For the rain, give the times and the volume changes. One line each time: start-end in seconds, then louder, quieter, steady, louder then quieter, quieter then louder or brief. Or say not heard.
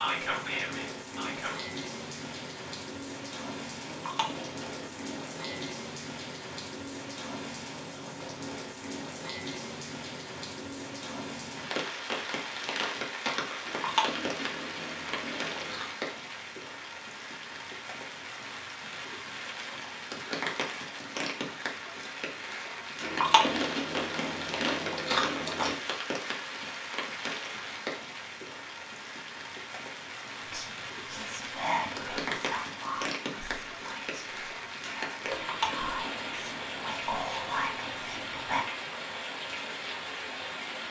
0.0-40.8 steady.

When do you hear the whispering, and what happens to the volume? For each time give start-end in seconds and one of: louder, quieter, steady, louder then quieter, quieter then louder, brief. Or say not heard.
0.0-1.6 brief
30.4-38.6 quieter then louder.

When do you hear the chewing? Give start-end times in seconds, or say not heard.
3.9-5.7, 13.7-15.9, 23.0-25.8, 35.3-36.9.